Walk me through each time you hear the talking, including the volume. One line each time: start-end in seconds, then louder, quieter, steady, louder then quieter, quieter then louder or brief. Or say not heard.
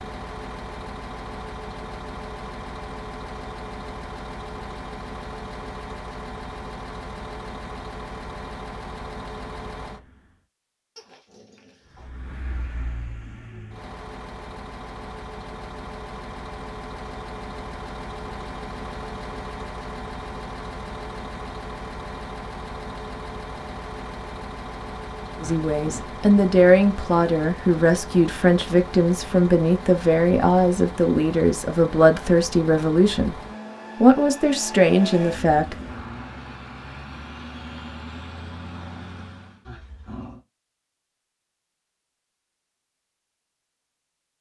25.4-33.4 steady
34.0-35.8 brief.